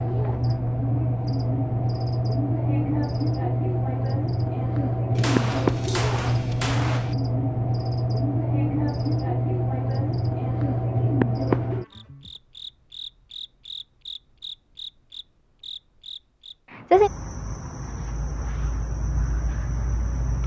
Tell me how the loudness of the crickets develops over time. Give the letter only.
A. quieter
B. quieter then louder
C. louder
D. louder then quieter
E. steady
B.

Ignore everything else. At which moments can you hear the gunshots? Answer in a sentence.
The gunshots can be heard from 5.2 to 7.2 s.